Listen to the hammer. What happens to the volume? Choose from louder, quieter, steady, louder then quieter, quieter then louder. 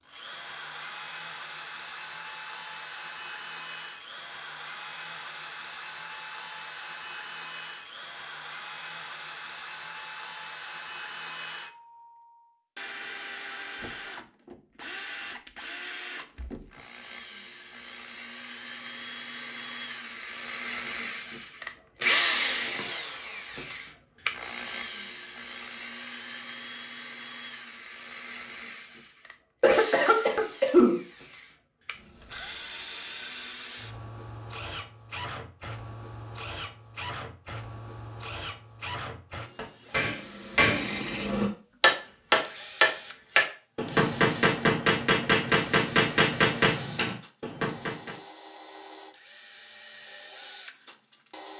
louder then quieter.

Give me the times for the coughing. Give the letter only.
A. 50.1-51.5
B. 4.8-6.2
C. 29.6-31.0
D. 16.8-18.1
C.